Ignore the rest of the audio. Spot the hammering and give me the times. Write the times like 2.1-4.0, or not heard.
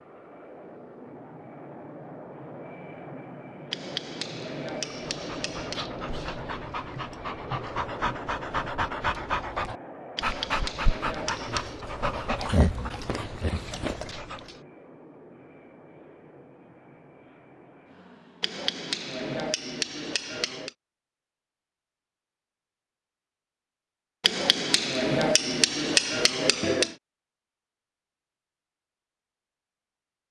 3.7-5.8, 10.2-11.8, 18.4-20.7, 24.2-26.9.